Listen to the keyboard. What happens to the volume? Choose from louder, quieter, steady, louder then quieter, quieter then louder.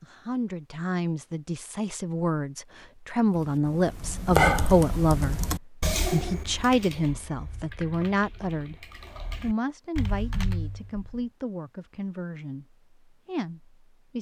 quieter then louder.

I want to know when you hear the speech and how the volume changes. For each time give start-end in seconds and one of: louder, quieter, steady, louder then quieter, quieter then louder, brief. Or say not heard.
0.0-14.1 louder then quieter.